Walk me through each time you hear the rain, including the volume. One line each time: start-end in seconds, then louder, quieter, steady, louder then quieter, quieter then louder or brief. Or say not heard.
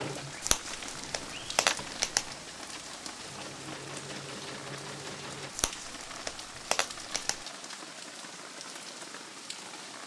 0.0-10.0 steady.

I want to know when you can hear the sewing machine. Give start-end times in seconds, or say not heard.
0.0-5.5.